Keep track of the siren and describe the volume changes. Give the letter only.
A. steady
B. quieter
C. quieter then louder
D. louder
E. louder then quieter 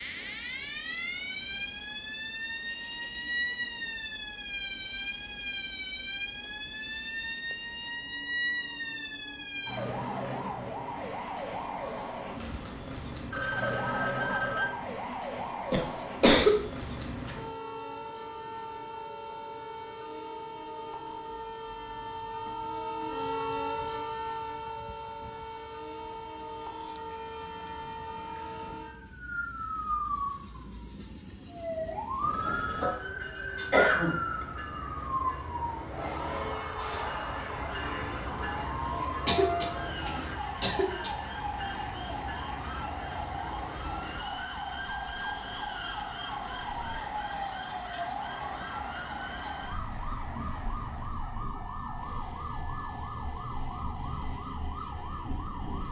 A.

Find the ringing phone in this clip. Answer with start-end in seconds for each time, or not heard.
13.3-14.7, 32.2-33.0.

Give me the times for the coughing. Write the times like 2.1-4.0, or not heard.
15.7-16.6, 32.5-33.0, 33.5-34.2, 39.2-41.1.